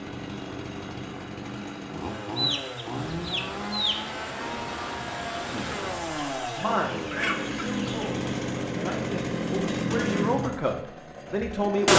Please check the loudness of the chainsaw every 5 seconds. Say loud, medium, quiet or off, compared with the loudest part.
medium, loud, loud.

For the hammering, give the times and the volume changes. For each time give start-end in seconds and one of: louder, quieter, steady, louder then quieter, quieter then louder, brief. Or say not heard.
not heard.